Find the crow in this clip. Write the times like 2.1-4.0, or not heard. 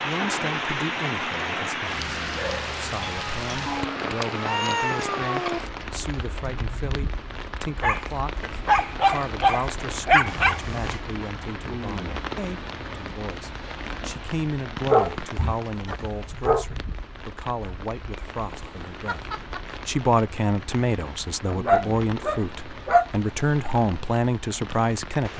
not heard.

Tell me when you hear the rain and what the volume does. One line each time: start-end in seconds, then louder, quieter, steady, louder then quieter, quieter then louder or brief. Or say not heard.
0.0-25.3 quieter.